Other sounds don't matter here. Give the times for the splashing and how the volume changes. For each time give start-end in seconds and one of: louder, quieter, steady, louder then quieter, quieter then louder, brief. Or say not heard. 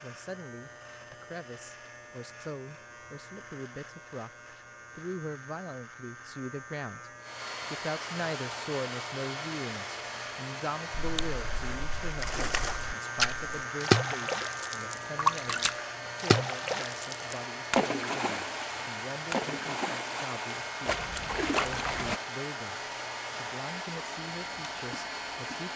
10.9-22.2 louder then quieter.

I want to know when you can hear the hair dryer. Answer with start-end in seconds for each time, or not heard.
7.2-25.7.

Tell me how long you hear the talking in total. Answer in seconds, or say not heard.
25 s.